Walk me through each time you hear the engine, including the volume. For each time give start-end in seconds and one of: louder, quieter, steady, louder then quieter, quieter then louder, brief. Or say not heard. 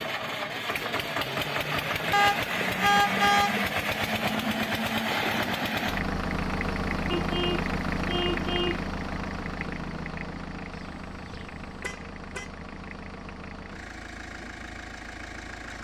0.0-15.8 quieter.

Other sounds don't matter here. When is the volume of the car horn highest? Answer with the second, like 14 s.
3 s.